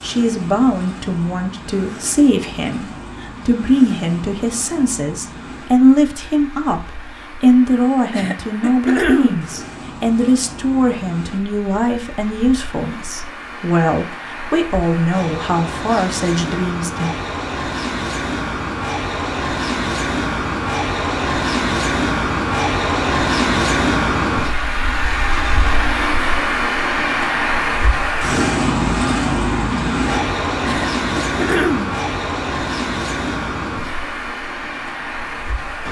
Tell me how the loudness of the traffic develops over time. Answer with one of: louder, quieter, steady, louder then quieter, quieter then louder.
louder.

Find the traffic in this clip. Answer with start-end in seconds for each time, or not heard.
0.0-35.8.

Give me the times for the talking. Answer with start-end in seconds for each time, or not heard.
0.0-17.1.